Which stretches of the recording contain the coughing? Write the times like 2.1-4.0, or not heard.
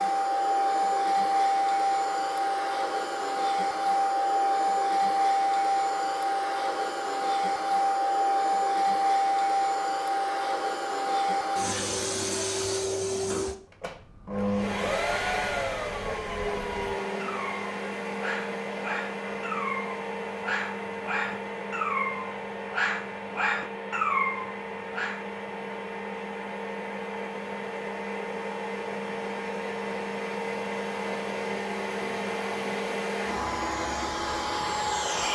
not heard.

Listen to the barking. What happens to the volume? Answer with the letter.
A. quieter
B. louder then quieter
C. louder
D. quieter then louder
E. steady
C.